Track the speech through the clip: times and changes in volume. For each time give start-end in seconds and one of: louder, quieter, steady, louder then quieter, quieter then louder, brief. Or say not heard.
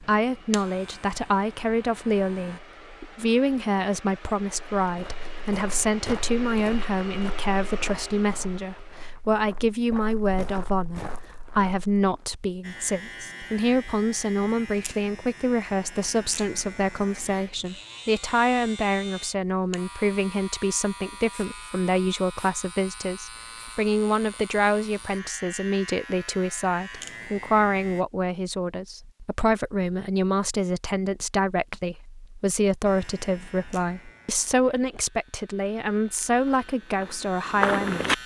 0.0-38.2 steady.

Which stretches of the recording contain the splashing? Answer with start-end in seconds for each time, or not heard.
not heard.